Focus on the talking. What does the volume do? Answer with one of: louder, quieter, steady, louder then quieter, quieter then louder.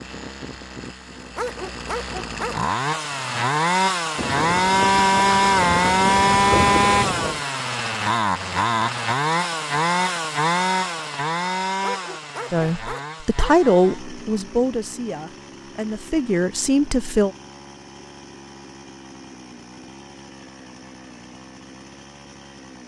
quieter then louder.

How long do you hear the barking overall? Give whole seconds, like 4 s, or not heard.
3 s.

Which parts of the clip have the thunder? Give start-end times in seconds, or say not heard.
4.2-7.5.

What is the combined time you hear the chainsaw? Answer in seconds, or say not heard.
23 s.